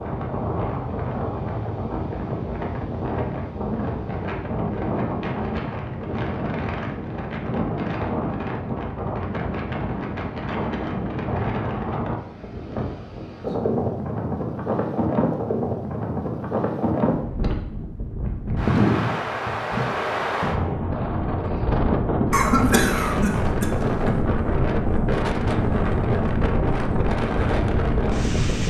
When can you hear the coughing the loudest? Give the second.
23 s.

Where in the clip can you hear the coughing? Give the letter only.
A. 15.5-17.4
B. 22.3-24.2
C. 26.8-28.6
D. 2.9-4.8
B.